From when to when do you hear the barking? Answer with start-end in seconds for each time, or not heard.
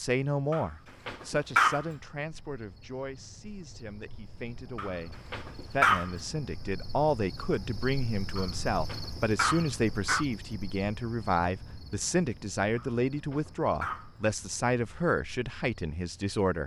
0.5-1.9, 4.8-6.1, 8.3-10.2, 12.8-14.1.